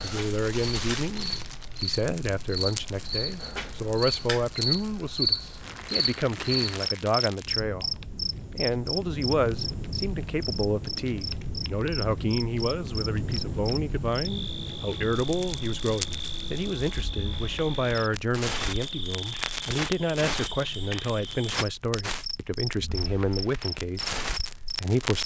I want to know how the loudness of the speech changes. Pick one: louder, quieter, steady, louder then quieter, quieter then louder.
steady.